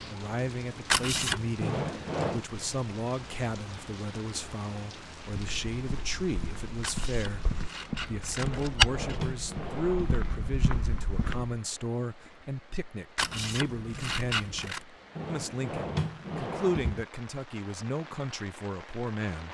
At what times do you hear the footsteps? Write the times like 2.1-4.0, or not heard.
5.2-11.6.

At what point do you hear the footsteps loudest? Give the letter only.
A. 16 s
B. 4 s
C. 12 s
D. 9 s
D.